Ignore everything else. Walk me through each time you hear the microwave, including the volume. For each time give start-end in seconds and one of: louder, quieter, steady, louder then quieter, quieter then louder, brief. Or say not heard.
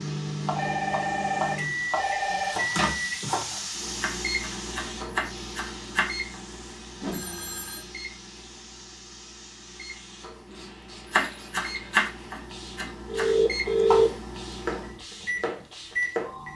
0.0-16.5 quieter then louder.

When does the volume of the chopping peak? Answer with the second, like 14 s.
12 s.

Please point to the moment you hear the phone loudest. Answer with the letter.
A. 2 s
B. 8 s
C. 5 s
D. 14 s
D.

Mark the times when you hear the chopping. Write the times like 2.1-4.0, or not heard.
0.5-6.1, 11.1-16.3.